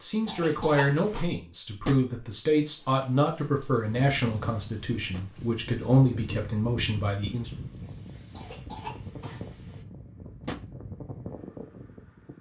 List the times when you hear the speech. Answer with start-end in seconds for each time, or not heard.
0.0-7.5.